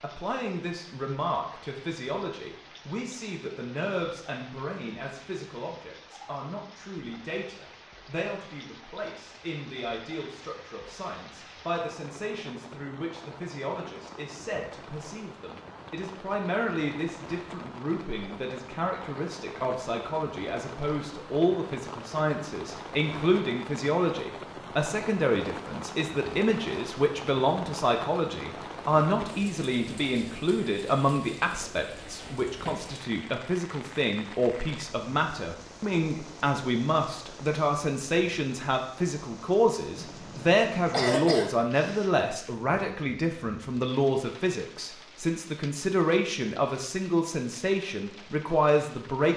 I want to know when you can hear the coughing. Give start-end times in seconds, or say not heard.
40.0-41.7.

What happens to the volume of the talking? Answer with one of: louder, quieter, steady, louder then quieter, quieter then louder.
louder.